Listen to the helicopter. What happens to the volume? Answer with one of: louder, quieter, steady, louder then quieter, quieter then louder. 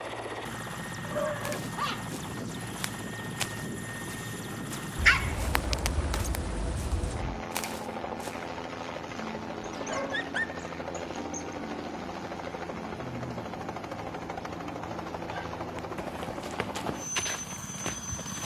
steady.